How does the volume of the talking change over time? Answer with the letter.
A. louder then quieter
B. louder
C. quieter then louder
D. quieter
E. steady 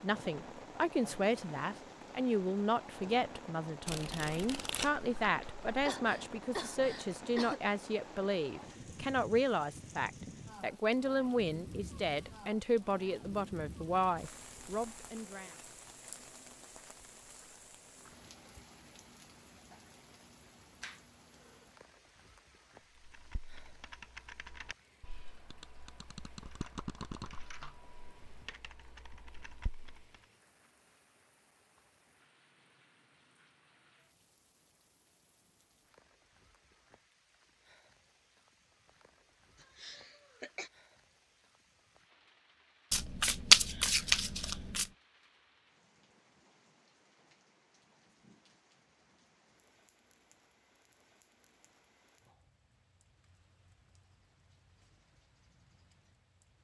E.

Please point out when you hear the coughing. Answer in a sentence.
You can hear the coughing from 5.8 to 7.7 s, from 20.8 to 21.6 s and from 39.6 to 40.7 s.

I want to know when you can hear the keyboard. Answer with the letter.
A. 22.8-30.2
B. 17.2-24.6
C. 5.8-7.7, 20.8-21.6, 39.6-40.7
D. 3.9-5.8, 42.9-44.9
A.